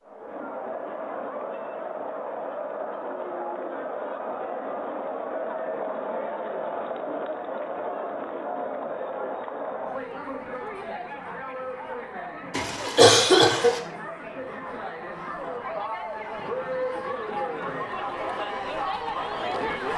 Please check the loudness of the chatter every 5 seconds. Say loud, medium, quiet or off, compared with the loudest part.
loud, loud, medium, loud.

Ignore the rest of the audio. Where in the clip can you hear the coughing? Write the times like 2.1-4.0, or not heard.
12.5-13.8.